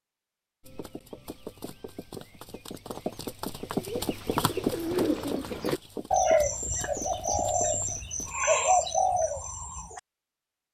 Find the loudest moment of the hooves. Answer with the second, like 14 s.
5 s.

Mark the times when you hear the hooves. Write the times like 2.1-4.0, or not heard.
0.6-8.3.